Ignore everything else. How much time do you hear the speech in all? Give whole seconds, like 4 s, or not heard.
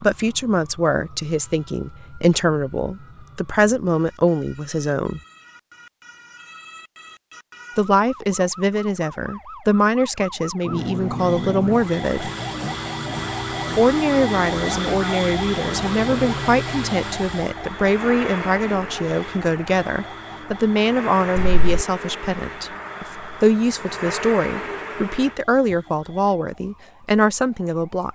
24 s.